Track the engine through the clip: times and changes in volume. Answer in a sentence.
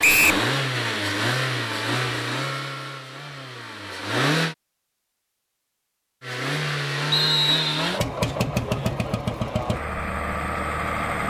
The engine can be heard from 0.0 to 4.5 s, getting quieter; and from 6.2 to 11.2 s, at a steady volume.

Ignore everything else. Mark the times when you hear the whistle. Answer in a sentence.
The whistle can be heard from 0.0 to 0.5 s and from 7.1 to 7.9 s.